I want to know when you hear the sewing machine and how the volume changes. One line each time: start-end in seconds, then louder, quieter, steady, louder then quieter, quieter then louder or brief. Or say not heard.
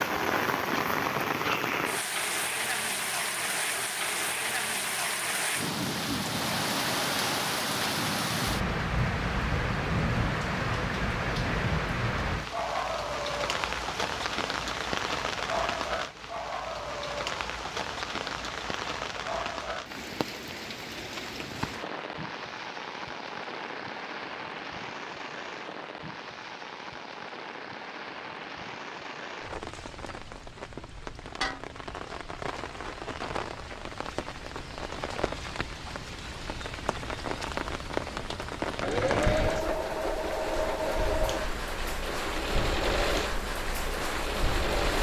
38.1-44.9 quieter.